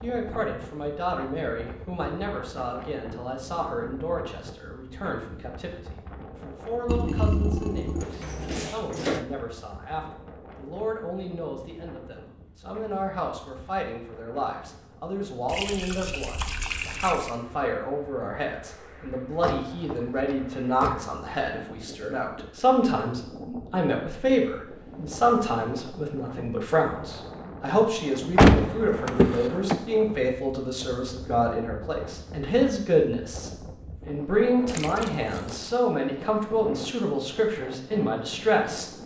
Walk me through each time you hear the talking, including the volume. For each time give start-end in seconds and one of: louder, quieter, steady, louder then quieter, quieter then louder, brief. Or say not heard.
0.0-39.0 louder.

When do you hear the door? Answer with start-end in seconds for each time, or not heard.
8.0-9.2, 19.4-20.9, 28.4-29.8.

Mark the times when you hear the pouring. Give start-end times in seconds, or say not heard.
6.8-8.1, 15.4-17.4, 34.6-35.8.